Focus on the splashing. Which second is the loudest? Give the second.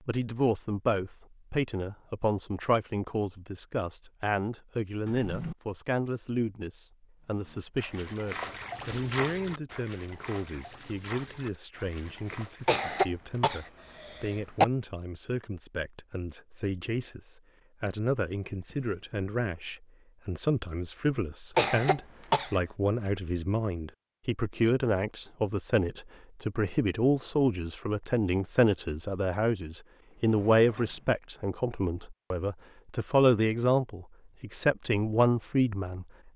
9 s.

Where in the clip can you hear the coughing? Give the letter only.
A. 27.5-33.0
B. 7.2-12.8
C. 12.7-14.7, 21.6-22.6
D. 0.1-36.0
C.